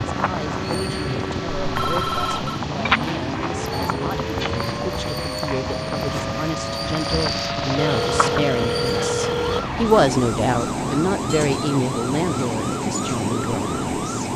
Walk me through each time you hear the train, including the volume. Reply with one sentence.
You can hear the train from 0.0 to 14.3 s, at a steady volume.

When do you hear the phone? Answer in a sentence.
The phone can be heard from 1.7 to 2.6 s and from 7.8 to 9.8 s.